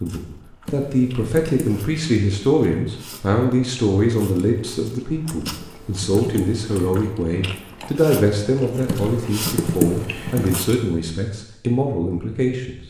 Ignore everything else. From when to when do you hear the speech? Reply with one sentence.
You can hear the speech from 0.0 to 12.8 s.